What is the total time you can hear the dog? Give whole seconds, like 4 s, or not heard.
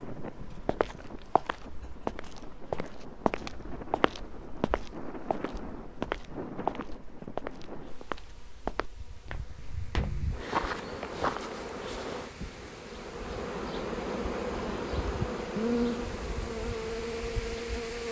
not heard.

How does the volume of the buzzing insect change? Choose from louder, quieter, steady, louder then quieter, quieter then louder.
louder.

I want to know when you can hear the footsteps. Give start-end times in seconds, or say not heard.
0.7-11.4.